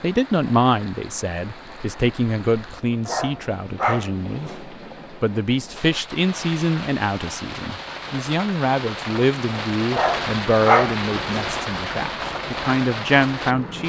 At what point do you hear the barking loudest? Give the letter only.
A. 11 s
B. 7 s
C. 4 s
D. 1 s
A.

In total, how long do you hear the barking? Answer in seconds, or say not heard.
3 s.